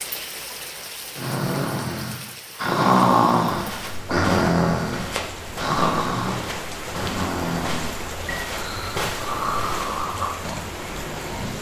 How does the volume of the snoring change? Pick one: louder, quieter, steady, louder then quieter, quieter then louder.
quieter.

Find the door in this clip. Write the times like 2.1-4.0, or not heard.
not heard.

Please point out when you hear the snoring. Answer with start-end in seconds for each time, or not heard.
1.1-11.5.